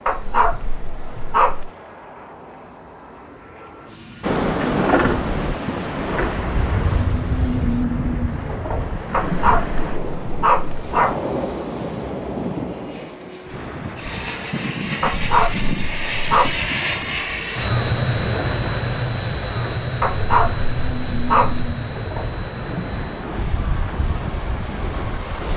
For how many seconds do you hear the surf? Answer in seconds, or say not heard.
21 s.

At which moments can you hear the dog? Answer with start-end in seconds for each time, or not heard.
0.1-1.7, 9.1-11.2, 15.0-16.6, 20.0-21.7.